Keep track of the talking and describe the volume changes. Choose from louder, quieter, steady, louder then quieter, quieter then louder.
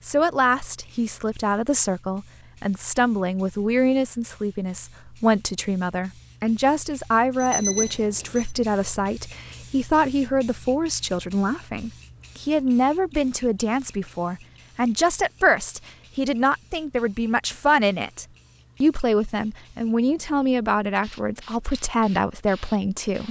steady.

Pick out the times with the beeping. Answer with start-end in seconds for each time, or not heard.
7.4-8.6.